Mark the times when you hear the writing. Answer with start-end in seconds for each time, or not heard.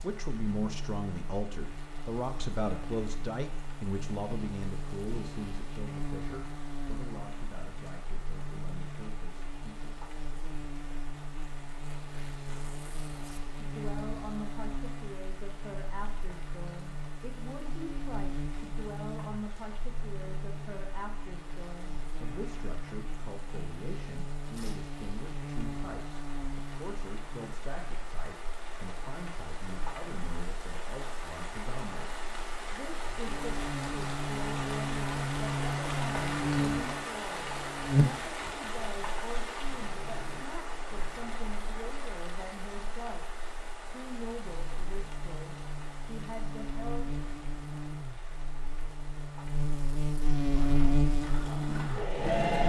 not heard.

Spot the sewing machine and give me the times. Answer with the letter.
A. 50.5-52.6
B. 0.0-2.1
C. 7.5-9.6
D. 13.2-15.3
A.